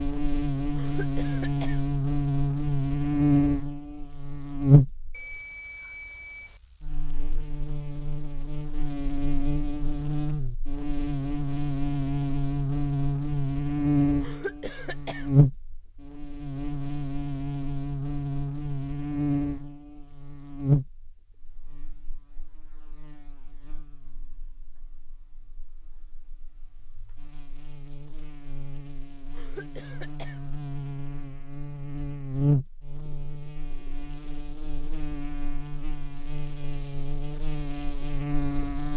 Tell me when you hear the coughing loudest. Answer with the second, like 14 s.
15 s.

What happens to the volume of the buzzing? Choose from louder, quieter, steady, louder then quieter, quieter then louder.
quieter then louder.